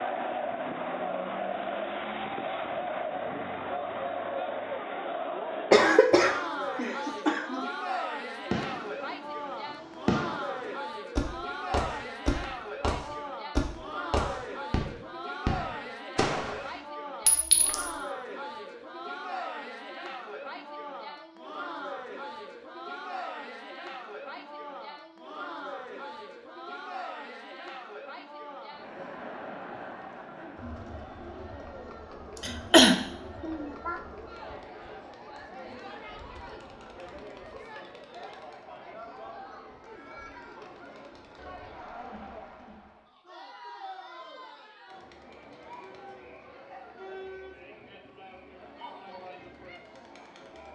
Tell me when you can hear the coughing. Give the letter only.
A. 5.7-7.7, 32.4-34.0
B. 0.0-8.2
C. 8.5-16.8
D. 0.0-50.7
A.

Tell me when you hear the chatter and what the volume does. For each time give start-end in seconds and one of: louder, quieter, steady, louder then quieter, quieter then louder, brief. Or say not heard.
0.0-50.7 quieter.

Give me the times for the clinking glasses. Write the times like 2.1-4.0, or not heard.
17.2-17.9.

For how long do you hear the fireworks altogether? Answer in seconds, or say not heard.
8 s.